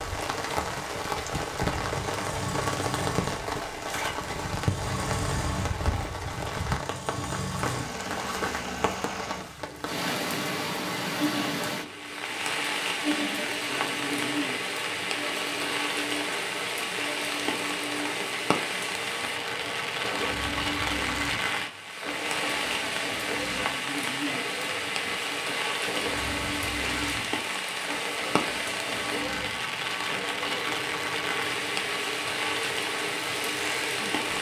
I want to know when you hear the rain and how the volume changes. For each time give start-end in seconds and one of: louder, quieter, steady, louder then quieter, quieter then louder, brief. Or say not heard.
0.0-34.3 steady.